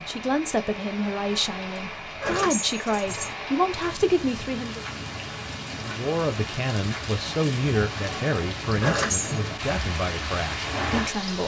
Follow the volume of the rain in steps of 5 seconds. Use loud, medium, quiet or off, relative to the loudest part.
medium, loud, loud.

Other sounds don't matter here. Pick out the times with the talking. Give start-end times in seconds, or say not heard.
0.0-4.8, 5.9-11.4.